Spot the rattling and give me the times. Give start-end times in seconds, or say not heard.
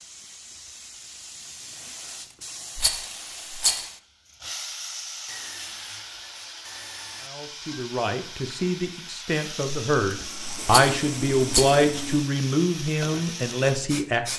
2.8-3.9, 10.7-11.8.